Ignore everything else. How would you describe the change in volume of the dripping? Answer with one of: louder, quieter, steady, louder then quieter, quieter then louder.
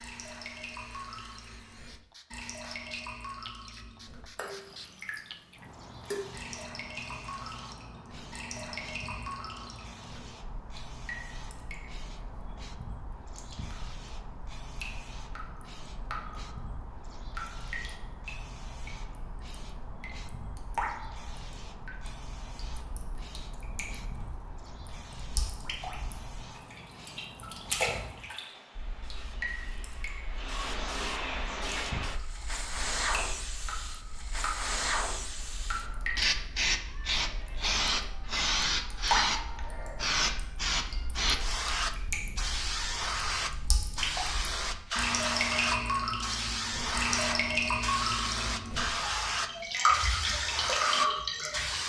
louder.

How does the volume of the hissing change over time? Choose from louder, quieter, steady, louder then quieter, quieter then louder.
louder.